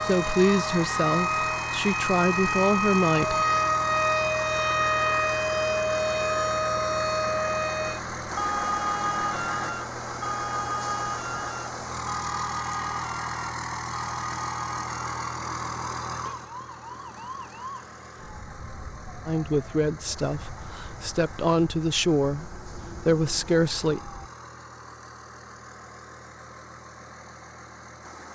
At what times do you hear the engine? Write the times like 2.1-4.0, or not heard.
0.0-28.2.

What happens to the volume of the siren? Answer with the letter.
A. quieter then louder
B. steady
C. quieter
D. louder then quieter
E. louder
C.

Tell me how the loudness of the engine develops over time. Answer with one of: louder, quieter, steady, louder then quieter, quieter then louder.
quieter.